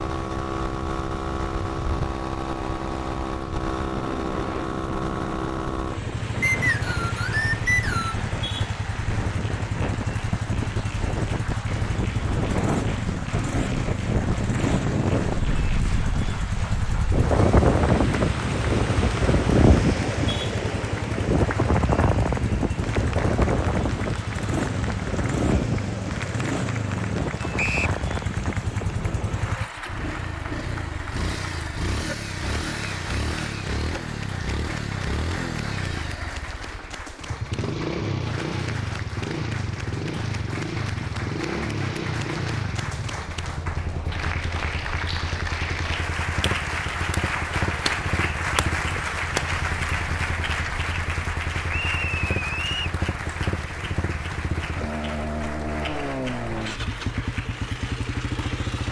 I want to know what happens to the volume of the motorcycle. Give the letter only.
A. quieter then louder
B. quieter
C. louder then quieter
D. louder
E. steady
E.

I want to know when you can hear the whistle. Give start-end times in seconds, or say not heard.
6.4-8.2, 27.6-28.0, 51.7-53.0.